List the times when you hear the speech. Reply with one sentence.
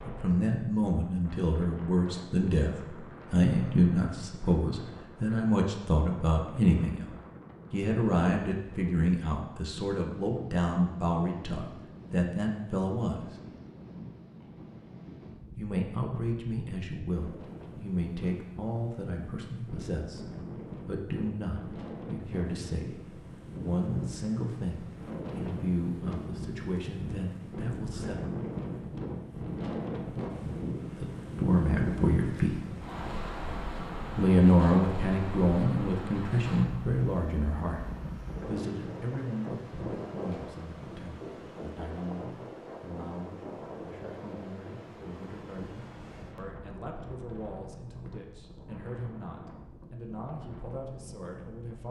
You can hear the speech from 0.1 to 7.0 s, from 7.7 to 13.3 s, from 15.6 to 28.1 s, from 30.9 to 32.6 s and from 34.1 to 51.8 s.